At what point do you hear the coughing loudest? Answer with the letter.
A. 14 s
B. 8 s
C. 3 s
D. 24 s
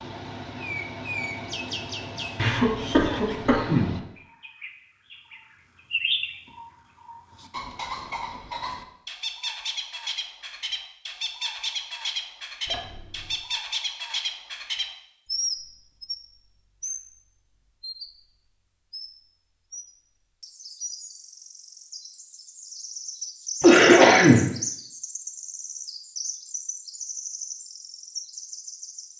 D.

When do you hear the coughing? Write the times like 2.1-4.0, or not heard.
2.4-4.0, 12.7-13.3, 23.6-24.4.